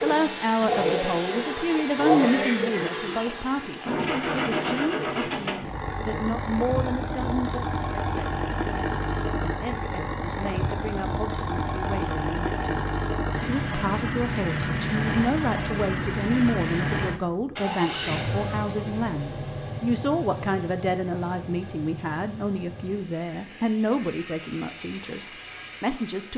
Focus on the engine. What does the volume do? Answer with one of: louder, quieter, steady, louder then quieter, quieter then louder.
quieter.